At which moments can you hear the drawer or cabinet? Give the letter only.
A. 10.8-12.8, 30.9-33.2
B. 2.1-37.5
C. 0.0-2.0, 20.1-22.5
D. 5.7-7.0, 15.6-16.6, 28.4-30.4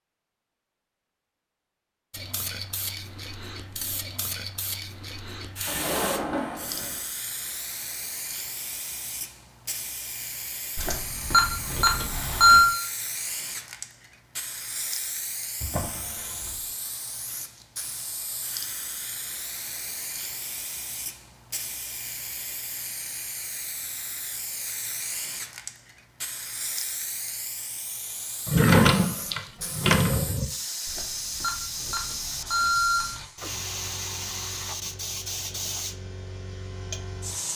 D.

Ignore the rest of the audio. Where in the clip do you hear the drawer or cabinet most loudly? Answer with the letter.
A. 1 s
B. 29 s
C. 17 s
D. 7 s
B.